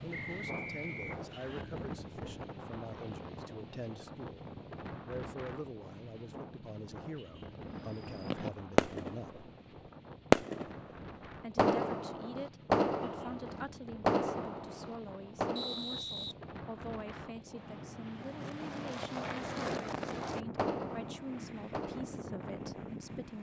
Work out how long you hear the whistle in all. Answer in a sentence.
The whistle can be heard for 3 seconds in total.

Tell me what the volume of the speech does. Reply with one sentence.
The volume of the speech stays about the same.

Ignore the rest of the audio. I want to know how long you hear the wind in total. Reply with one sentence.
The wind can be heard for 23 seconds in total.